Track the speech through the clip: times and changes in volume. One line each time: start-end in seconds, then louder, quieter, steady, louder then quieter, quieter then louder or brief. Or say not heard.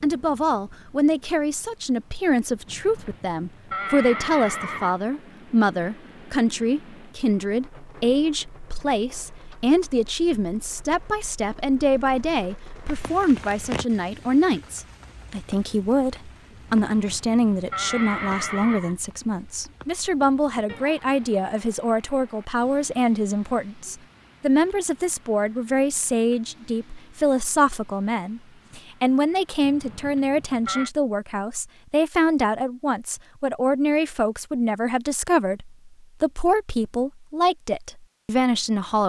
0.0-39.0 steady.